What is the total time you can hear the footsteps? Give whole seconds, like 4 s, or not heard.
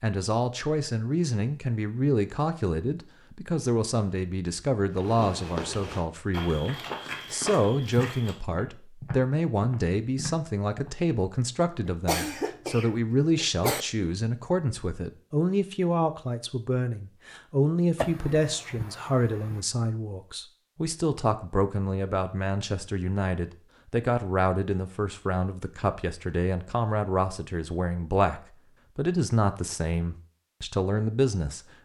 6 s.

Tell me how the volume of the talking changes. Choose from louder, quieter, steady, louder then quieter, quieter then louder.
steady.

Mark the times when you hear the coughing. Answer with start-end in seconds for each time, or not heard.
11.8-13.8, 17.9-19.6.